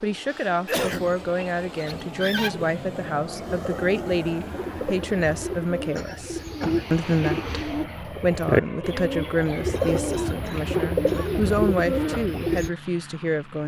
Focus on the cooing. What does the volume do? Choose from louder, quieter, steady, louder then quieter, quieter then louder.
louder.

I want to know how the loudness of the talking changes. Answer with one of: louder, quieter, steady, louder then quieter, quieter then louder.
steady.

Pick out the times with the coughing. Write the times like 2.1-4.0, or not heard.
0.3-1.2, 6.0-6.8, 9.7-11.4.